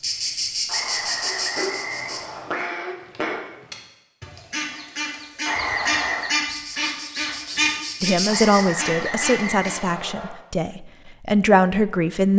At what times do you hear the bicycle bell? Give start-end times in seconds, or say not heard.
not heard.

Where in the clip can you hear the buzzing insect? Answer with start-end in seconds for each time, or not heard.
0.0-2.3, 6.5-8.7.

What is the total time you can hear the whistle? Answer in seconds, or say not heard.
5 s.